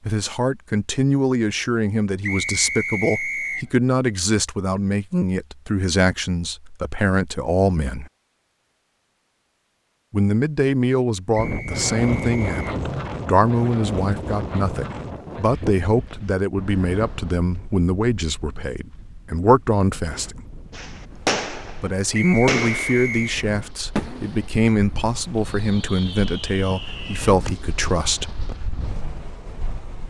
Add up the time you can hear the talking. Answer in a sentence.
The talking can be heard for 25 seconds in total.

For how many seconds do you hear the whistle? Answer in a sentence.
You can hear the whistle for 4 seconds altogether.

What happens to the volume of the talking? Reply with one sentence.
The volume of the talking stays about the same.